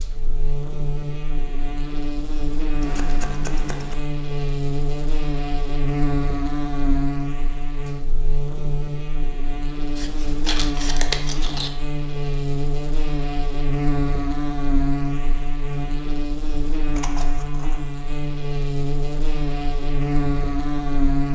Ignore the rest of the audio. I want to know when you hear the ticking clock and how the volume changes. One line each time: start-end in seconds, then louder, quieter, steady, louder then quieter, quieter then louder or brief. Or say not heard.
not heard.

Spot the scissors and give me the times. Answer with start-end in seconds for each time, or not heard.
2.8-4.0, 9.9-11.7, 16.9-17.8.